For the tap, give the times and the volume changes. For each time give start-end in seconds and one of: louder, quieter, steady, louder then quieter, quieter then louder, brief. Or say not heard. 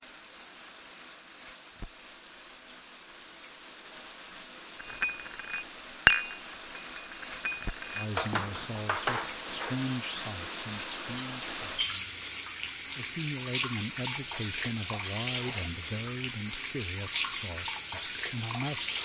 0.0-19.0 louder.